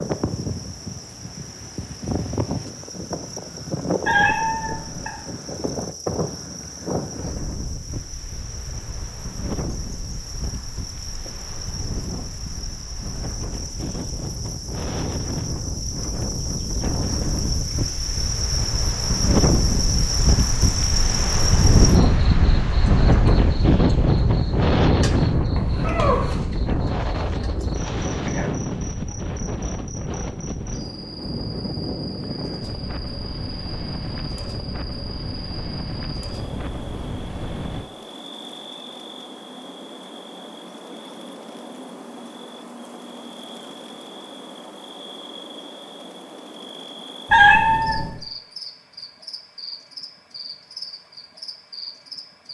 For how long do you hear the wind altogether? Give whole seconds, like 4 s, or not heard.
38 s.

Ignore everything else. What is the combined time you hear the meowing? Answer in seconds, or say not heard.
3 s.